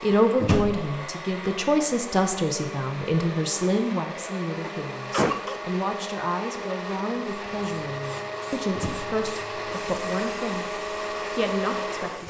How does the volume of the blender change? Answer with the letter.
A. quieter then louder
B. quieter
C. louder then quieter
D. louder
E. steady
D.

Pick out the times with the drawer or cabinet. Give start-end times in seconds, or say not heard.
0.3-0.9, 8.7-9.2.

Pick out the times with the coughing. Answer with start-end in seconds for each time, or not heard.
4.6-5.6.